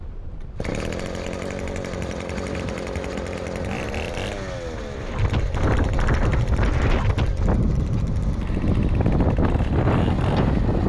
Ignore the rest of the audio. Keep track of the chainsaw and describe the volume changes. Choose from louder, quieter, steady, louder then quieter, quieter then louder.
quieter.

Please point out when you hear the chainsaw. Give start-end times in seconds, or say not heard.
0.4-10.8.